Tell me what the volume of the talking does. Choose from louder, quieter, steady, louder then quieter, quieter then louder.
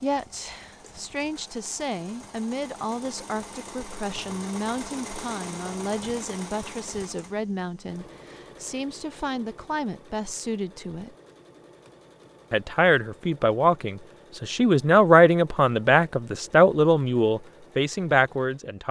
louder.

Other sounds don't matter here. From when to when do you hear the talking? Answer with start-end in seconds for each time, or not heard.
0.0-11.1, 12.5-18.8.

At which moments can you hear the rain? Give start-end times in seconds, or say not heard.
not heard.